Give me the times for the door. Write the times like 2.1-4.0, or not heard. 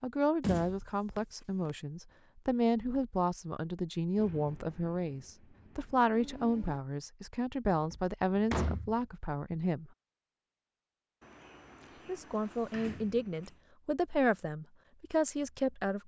0.4-1.7, 7.7-8.9, 11.2-13.6.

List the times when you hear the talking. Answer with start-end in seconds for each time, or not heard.
0.0-9.9, 12.1-16.0.